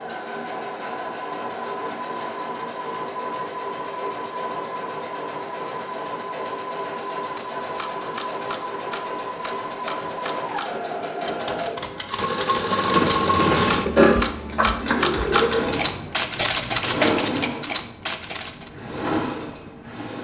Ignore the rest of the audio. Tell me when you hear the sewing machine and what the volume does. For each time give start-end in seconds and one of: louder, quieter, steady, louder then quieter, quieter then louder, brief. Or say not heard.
0.0-20.1 louder then quieter.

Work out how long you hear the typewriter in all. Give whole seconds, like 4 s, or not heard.
11 s.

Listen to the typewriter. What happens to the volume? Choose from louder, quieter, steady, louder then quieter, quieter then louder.
louder.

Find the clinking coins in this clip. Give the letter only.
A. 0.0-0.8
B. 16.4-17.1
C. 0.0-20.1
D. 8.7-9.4
B.